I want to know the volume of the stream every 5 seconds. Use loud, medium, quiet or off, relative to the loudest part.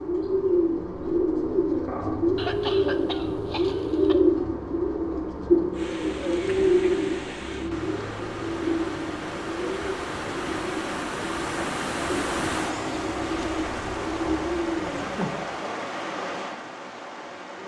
off, medium, loud, loud.